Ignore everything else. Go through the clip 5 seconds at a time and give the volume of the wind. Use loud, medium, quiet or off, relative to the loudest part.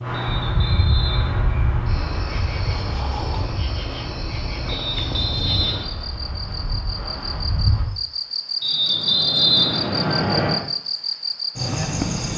loud, loud, off.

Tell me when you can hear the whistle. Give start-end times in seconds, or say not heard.
0.1-1.6, 4.7-6.0, 8.6-10.6.